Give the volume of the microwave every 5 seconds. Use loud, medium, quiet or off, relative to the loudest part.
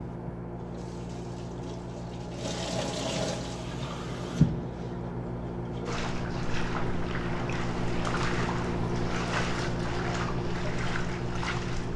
medium, loud, loud.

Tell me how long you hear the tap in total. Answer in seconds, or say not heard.
12 s.